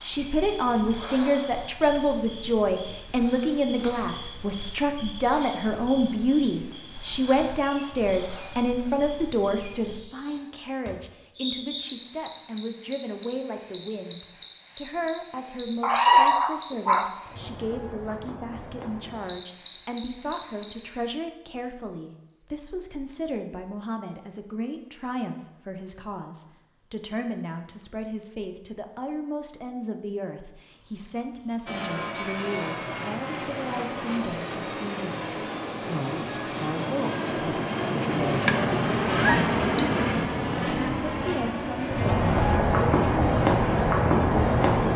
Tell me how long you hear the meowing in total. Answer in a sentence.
You can hear the meowing for 3 seconds altogether.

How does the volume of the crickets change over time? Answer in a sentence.
The volume of the crickets goes up.